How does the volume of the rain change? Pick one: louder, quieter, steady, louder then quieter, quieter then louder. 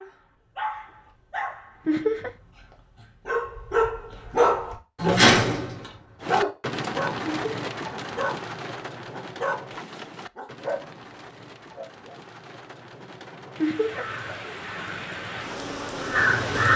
quieter then louder.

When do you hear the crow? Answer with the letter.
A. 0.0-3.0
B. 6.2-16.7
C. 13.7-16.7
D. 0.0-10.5
C.